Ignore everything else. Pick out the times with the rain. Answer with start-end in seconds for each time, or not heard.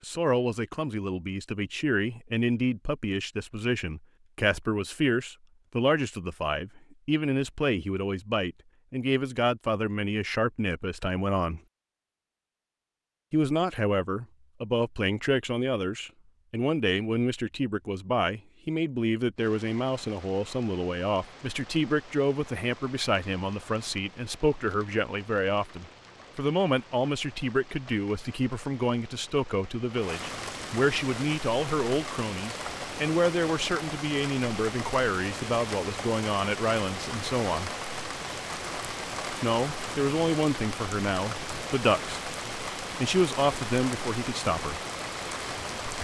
19.4-45.9.